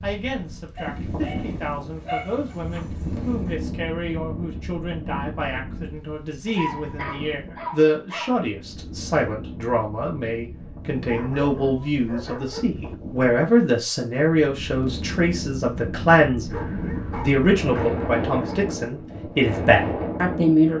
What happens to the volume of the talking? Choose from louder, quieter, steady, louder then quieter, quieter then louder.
louder.